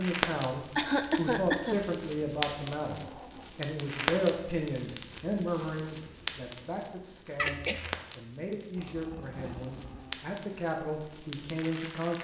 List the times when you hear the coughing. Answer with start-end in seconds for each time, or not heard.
0.8-1.8, 7.3-8.0.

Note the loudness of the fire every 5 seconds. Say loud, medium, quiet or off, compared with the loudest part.
loud, medium, medium.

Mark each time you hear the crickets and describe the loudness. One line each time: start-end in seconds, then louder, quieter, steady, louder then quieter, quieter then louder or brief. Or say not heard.
not heard.